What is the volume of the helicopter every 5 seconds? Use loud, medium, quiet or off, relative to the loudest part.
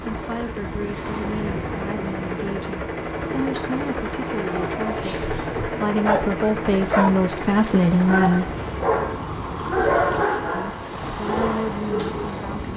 loud, loud, medium.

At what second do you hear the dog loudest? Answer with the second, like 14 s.
10 s.